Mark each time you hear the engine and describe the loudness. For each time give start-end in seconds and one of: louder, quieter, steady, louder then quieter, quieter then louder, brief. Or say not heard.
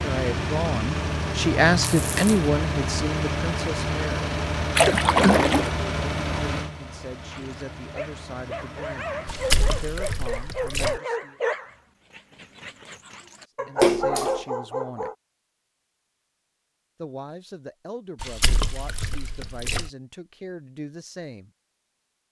0.0-10.0 quieter.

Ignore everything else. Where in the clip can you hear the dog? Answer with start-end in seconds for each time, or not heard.
7.3-15.2.